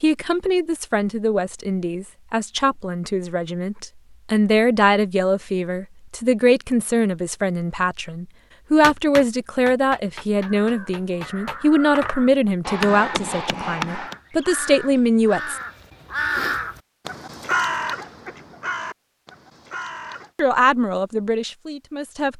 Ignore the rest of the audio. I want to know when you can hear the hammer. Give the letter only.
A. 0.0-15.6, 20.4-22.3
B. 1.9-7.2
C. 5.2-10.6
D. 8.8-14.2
D.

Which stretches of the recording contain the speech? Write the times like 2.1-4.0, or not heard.
0.0-15.6, 20.4-22.3.